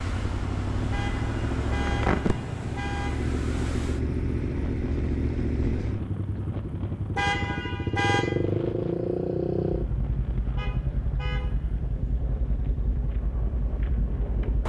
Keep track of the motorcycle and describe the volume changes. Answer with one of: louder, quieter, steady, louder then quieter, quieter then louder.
quieter.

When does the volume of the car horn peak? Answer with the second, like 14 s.
8 s.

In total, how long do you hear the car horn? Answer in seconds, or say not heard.
4 s.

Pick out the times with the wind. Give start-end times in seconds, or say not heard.
0.0-14.6.